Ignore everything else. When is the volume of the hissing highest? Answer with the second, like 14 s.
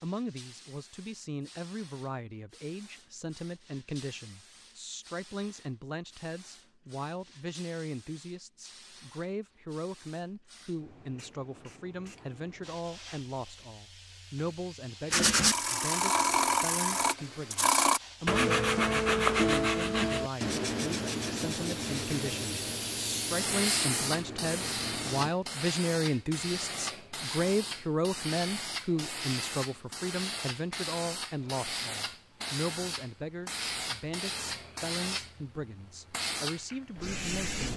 24 s.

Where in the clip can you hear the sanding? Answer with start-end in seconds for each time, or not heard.
15.1-25.3.